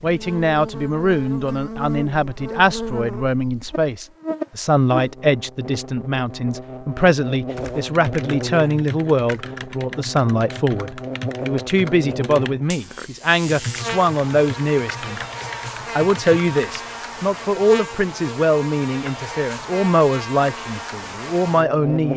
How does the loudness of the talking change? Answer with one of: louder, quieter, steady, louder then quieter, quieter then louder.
steady.